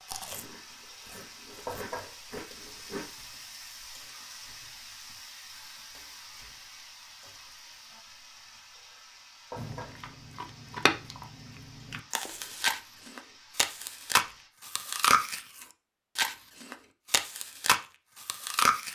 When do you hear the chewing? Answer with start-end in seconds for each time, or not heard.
0.1-3.0, 9.6-18.9.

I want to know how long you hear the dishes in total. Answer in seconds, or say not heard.
not heard.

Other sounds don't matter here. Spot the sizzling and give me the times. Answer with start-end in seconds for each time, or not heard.
0.0-14.5.